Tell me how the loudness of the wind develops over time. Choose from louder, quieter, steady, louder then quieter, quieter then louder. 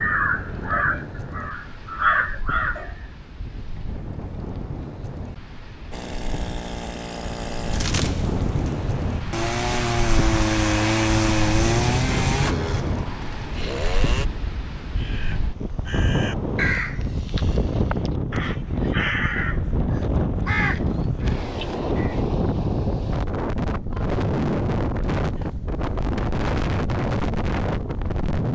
louder.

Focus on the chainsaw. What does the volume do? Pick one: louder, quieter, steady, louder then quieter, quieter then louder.
louder then quieter.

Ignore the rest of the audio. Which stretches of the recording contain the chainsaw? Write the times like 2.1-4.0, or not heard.
5.9-14.2.